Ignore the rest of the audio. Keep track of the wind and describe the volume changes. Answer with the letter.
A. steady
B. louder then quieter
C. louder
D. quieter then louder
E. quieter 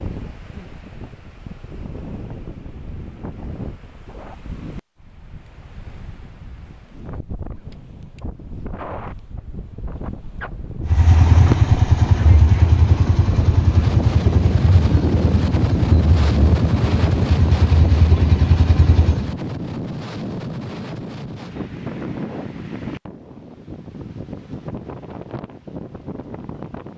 B.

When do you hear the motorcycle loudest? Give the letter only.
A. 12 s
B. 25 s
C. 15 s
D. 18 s
A.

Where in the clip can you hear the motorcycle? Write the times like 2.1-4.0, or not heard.
10.8-19.4.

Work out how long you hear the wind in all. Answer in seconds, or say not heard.
27 s.